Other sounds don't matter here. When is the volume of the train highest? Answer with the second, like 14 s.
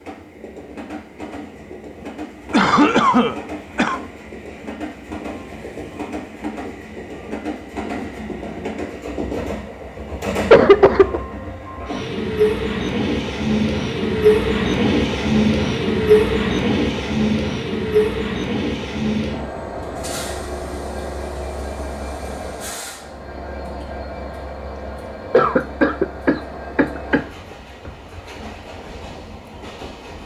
16 s.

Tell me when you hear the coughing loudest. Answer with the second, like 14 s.
11 s.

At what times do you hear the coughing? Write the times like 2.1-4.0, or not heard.
2.5-4.0, 10.5-11.2, 25.3-27.2.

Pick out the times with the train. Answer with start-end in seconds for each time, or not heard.
0.0-30.2.